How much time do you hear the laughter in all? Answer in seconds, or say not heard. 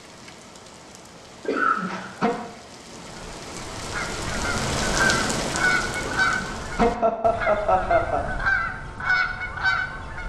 3 s.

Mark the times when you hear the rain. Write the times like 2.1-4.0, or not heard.
0.0-7.0.